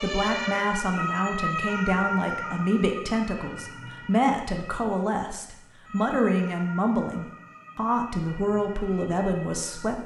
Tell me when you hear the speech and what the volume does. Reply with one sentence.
The speech can be heard from 0.0 to 10.0 s, at a steady volume.